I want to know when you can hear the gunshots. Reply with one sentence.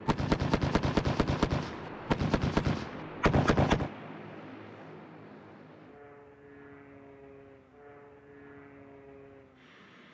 You can hear the gunshots from 0.1 to 3.9 s.